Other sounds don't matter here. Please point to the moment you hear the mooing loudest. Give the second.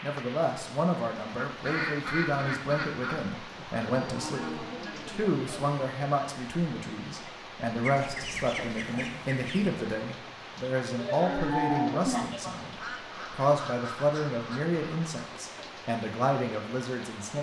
12 s.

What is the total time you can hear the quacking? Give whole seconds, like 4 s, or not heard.
7 s.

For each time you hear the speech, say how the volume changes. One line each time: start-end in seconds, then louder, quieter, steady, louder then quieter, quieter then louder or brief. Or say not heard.
0.0-17.3 steady.